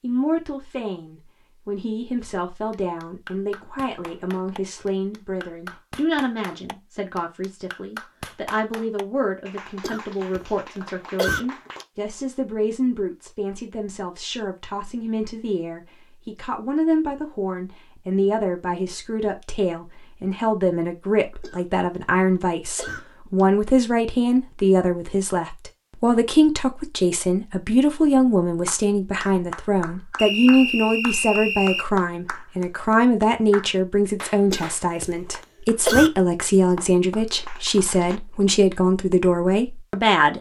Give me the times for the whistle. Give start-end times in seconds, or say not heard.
30.1-31.9.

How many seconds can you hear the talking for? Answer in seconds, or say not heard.
40 s.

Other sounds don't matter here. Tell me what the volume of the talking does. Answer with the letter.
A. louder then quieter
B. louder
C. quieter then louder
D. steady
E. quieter
B.